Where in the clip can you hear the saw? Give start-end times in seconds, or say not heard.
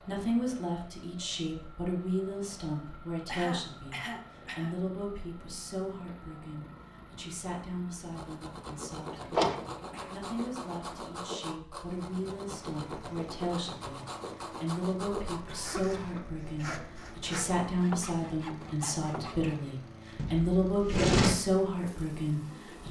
8.1-19.6.